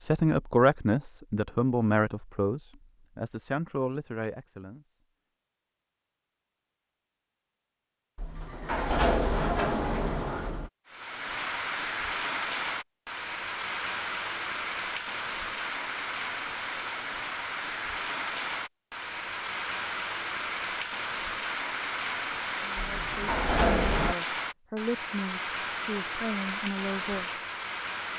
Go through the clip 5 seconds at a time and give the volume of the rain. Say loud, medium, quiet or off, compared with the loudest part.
off, off, loud, loud, loud, loud.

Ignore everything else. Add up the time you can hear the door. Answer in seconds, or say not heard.
4 s.